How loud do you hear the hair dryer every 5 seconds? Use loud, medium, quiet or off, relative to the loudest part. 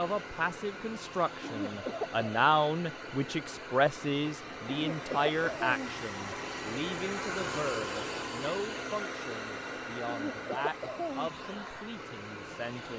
medium, loud, medium.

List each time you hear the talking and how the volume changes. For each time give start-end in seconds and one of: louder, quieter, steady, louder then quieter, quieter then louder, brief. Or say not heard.
0.0-12.9 quieter.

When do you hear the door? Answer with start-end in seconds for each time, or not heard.
not heard.